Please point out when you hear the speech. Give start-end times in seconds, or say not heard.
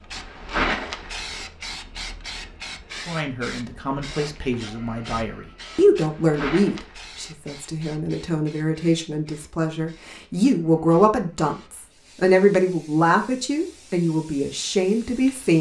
3.0-15.5.